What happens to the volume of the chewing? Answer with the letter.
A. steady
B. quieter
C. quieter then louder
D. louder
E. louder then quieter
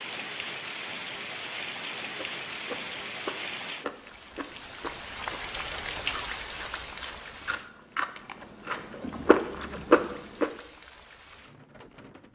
D.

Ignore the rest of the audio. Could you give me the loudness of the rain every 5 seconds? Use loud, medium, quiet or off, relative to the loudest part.
loud, loud, quiet.